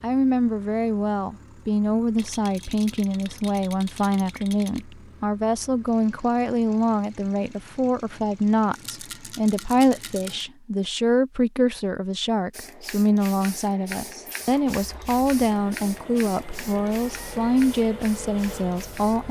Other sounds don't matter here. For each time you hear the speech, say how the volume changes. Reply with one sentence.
The speech can be heard from 0.0 to 19.2 s, at a steady volume.